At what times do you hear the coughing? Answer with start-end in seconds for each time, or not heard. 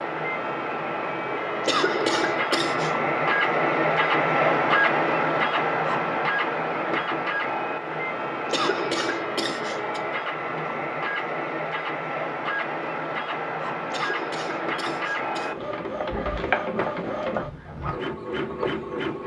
1.6-3.0, 8.5-10.0, 13.9-15.6.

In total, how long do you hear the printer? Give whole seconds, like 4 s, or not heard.
19 s.